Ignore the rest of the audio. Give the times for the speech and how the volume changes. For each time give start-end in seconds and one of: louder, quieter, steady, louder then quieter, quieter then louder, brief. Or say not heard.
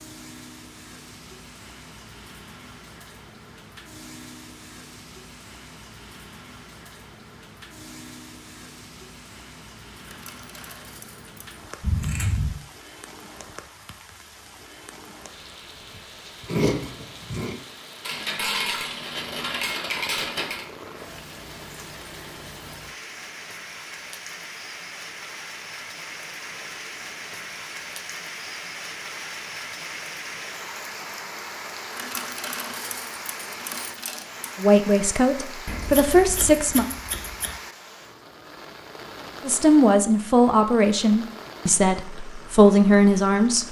34.5-36.9 brief
39.5-43.6 quieter then louder.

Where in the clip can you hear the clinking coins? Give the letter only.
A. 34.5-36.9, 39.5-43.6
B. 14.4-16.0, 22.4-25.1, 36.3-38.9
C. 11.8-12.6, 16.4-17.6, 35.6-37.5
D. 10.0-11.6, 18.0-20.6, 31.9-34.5
D.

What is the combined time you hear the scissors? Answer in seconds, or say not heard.
4 s.